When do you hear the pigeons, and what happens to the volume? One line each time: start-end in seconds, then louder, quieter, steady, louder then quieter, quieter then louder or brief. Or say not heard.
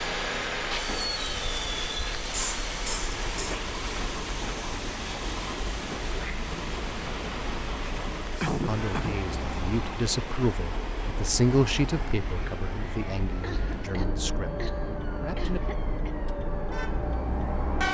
not heard.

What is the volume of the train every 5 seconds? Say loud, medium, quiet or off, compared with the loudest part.
loud, loud, medium, medium.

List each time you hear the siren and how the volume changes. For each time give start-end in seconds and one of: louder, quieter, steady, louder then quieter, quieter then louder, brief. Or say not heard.
0.0-17.8 louder.